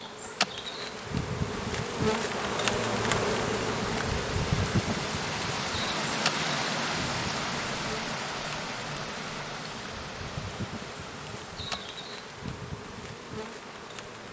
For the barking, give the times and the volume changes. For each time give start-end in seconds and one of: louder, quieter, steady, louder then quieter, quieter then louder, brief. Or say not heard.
not heard.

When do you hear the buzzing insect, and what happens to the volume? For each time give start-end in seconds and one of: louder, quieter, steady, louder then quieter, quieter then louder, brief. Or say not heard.
0.0-14.2 quieter.